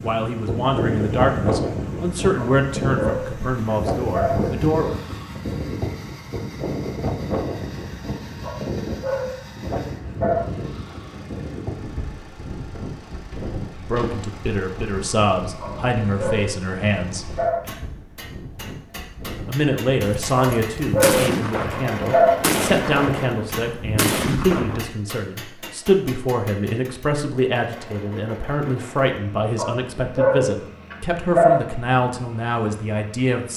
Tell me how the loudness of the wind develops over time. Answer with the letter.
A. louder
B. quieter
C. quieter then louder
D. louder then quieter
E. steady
B.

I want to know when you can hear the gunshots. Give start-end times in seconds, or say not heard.
20.0-24.9.